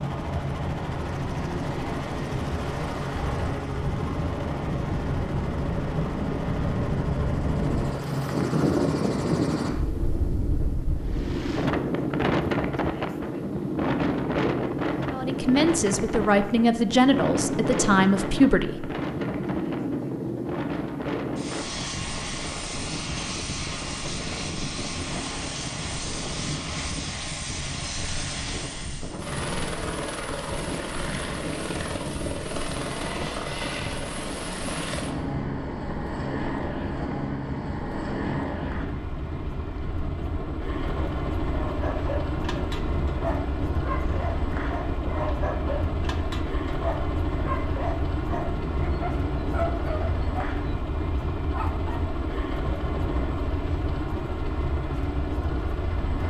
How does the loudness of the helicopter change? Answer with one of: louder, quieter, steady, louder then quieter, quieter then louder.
steady.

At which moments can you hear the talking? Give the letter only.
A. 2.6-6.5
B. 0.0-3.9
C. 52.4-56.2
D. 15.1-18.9
D.